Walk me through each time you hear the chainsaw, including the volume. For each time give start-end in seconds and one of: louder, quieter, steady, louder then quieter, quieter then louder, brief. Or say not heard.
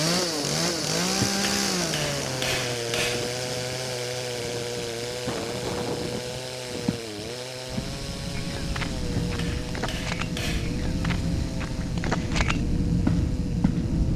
0.0-14.1 quieter.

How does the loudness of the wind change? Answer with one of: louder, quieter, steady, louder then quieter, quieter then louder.
louder.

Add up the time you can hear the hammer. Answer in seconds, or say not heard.
4 s.